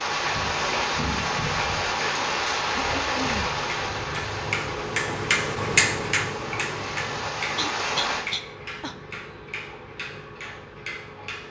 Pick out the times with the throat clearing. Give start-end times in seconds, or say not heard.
2.8-3.5, 7.5-8.9.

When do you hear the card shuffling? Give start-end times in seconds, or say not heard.
not heard.